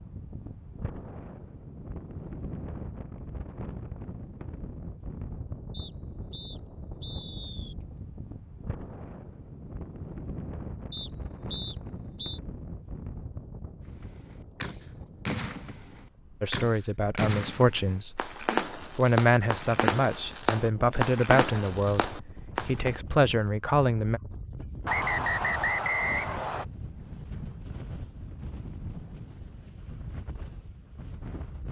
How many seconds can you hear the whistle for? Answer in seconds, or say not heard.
5 s.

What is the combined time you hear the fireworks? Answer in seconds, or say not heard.
9 s.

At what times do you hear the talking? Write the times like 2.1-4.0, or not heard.
16.4-24.2.